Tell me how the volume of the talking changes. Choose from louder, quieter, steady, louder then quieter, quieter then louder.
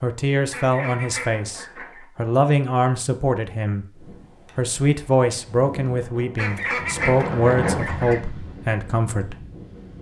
steady.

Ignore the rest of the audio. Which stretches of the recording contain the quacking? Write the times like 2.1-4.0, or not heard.
0.5-2.0, 6.3-8.2.